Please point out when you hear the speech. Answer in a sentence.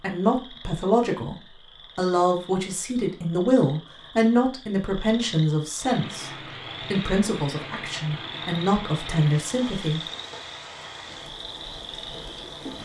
The speech can be heard from 0.0 to 6.3 s and from 6.9 to 10.0 s.